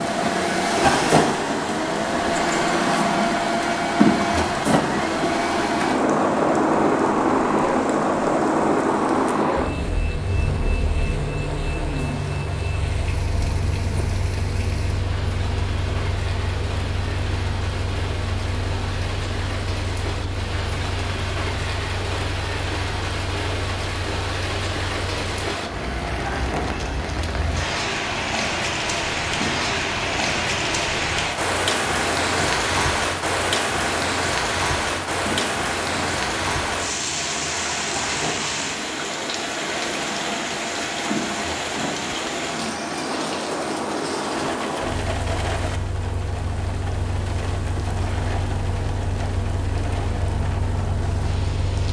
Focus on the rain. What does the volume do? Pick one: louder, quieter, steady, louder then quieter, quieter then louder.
louder then quieter.